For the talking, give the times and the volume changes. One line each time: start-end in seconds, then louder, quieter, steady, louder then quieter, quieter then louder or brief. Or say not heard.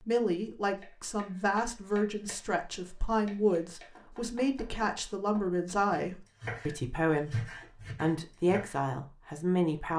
0.1-9.9 steady.